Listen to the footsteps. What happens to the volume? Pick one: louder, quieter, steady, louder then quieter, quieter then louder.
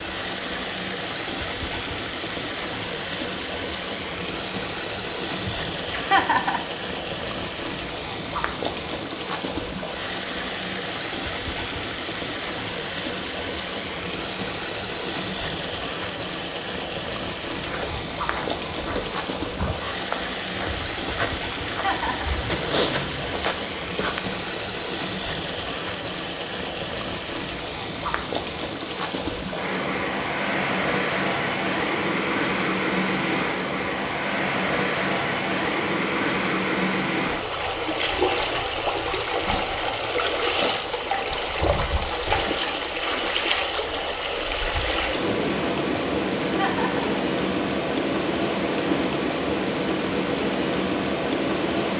louder.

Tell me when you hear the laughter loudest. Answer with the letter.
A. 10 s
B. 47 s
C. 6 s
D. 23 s
C.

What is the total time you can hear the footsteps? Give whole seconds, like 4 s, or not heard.
7 s.